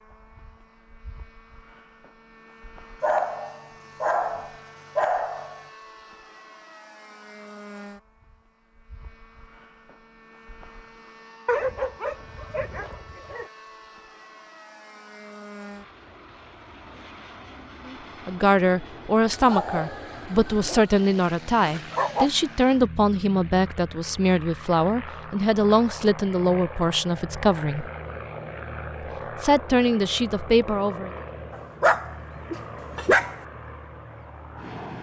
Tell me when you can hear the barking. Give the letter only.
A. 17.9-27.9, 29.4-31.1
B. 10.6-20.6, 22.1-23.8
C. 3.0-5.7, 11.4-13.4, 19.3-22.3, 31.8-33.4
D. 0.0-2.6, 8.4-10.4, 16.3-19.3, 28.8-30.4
C.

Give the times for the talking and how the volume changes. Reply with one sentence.
The talking can be heard from 17.9 to 27.9 s, at a steady volume; and briefly from 29.4 to 31.1 s.